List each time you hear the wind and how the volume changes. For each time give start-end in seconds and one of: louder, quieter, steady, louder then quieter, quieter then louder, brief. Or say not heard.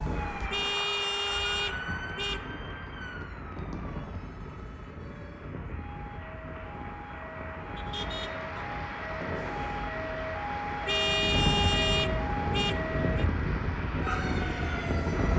0.0-15.3 louder.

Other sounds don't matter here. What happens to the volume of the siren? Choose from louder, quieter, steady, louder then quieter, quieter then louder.
quieter then louder.